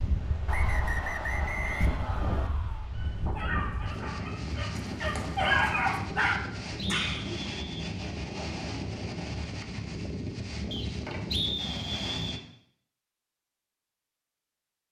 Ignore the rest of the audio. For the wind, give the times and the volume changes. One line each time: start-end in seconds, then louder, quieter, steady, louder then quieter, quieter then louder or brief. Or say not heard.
0.0-12.4 steady.